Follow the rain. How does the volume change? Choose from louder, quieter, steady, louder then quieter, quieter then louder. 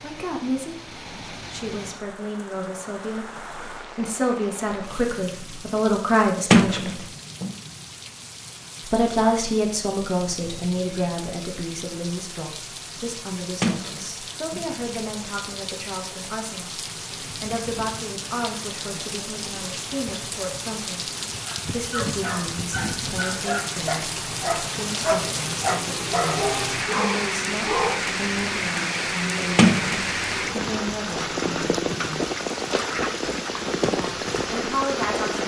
louder.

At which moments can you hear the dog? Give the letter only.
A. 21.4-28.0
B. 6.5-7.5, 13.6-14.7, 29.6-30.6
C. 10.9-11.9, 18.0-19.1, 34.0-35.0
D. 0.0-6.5
A.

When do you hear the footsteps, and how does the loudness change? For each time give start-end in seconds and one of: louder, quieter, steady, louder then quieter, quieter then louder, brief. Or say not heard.
not heard.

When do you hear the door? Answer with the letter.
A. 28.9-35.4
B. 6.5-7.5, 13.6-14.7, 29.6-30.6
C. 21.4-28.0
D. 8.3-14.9
B.